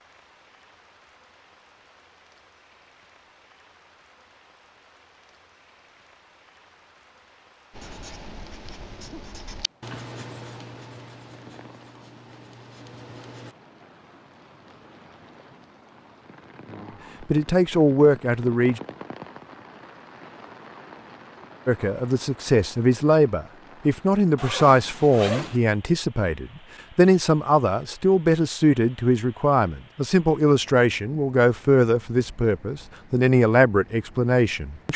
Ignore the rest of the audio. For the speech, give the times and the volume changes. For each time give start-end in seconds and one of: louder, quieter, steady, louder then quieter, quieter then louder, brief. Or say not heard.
17.2-18.8 brief
21.6-34.9 steady.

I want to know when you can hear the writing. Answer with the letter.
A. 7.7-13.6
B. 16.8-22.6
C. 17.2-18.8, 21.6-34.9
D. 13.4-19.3
A.